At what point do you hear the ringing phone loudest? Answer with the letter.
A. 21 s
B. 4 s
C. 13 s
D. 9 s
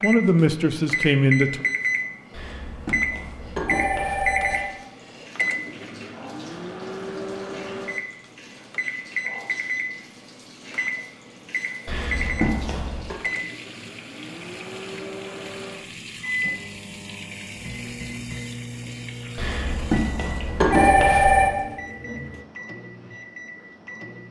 A.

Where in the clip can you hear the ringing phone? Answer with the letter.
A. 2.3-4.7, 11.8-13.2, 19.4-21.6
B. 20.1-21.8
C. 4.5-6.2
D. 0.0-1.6
A.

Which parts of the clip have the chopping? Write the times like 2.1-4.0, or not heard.
not heard.